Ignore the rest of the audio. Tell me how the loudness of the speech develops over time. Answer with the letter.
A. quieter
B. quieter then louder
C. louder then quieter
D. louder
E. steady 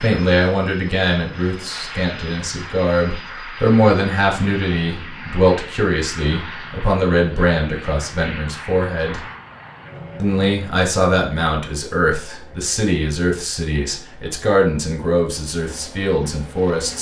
E.